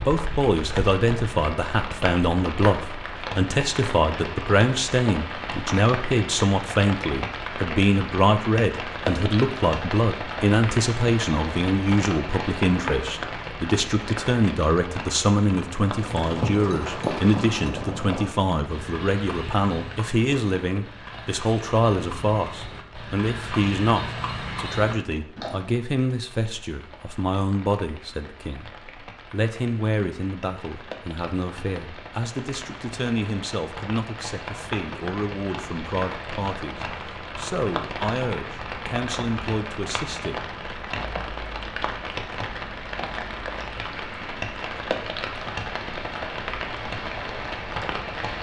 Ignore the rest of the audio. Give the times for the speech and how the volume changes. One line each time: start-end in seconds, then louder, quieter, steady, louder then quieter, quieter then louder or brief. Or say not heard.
0.0-40.4 quieter.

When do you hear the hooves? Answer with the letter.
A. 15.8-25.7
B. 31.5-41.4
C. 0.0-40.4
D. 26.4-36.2
A.